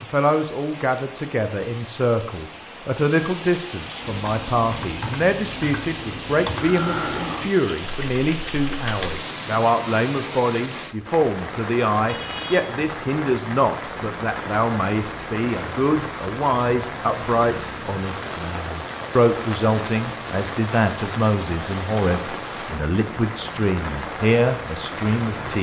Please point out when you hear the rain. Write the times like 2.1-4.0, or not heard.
0.0-25.5.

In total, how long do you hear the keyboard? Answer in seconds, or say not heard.
5 s.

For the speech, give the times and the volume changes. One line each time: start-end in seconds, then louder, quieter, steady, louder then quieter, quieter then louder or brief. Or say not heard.
0.0-25.5 steady.